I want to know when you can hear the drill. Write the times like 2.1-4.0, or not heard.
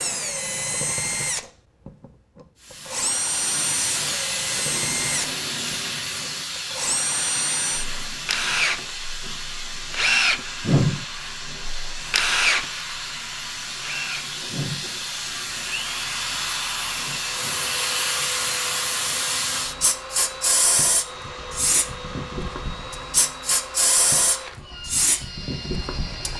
0.0-26.3.